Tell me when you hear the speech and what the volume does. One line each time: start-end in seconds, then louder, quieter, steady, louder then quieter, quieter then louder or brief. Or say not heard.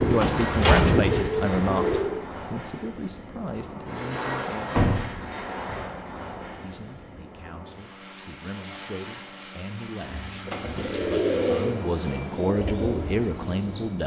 0.0-4.8 quieter
6.6-14.0 louder.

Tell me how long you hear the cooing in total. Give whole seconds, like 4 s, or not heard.
6 s.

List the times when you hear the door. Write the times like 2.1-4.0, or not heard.
0.2-1.3, 4.8-5.8, 10.0-11.1.